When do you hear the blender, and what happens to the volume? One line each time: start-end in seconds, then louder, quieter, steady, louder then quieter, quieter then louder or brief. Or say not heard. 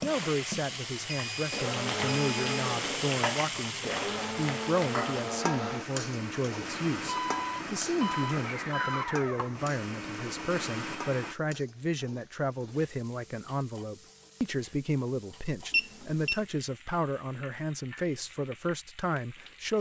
0.0-11.3 steady.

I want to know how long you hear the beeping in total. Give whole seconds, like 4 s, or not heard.
4 s.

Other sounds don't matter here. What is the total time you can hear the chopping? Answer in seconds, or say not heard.
not heard.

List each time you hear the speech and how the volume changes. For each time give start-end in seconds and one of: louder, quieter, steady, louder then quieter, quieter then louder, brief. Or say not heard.
0.0-19.7 steady.